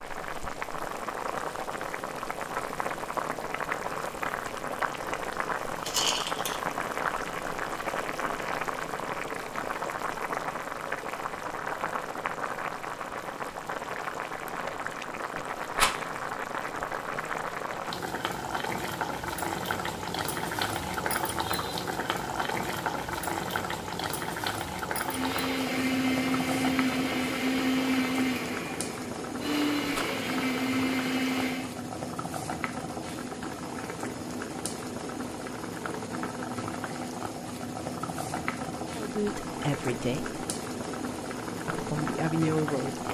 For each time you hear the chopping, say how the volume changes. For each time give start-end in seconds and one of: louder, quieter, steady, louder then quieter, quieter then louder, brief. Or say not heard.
not heard.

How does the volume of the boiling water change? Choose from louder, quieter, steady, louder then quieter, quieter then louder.
steady.